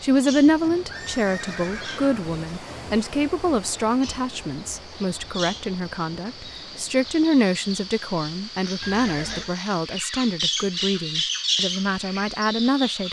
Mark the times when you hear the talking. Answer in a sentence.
You can hear the talking from 0.0 to 13.0 s.